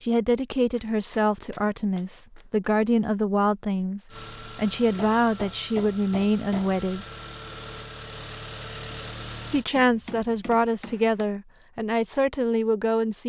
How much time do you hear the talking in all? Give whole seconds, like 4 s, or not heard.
11 s.